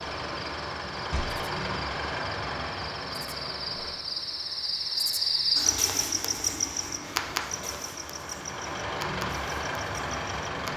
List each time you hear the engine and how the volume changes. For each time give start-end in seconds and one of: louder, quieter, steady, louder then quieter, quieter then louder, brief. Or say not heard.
0.0-10.7 quieter then louder.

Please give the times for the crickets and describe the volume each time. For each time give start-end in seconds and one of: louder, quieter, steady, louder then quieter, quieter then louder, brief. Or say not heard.
0.0-10.7 louder then quieter.